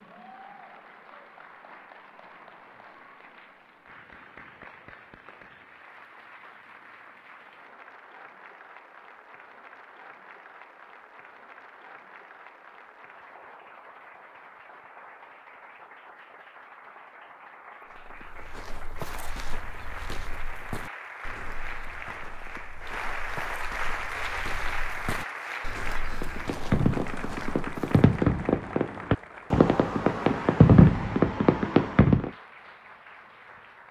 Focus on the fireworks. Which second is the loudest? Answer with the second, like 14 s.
31 s.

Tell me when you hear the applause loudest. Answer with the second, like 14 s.
24 s.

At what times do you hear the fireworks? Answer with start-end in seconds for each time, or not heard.
26.1-32.3.